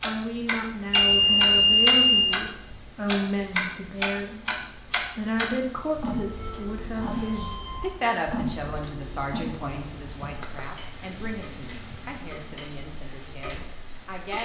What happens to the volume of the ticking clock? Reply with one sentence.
The loudness of the ticking clock goes down.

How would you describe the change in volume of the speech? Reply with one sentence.
The loudness of the speech goes down.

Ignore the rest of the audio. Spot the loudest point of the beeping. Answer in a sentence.
The volume of the beeping peaks at 2 seconds.